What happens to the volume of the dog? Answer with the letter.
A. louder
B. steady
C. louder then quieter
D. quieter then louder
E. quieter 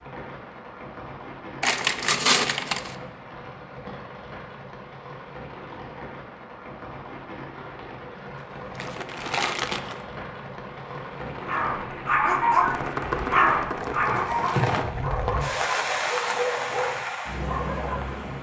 E.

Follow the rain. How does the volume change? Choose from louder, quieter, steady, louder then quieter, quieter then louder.
louder.